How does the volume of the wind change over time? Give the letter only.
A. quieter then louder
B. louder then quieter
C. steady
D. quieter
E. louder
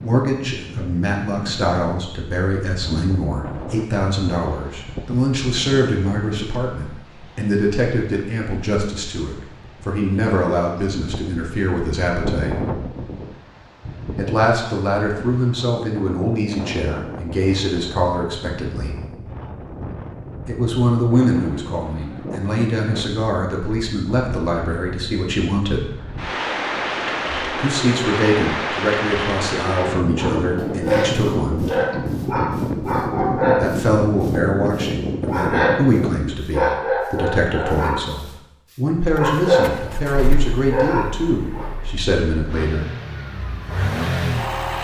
E.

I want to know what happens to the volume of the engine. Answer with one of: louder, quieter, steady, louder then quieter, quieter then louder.
quieter then louder.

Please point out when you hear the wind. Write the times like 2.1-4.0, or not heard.
0.0-36.5.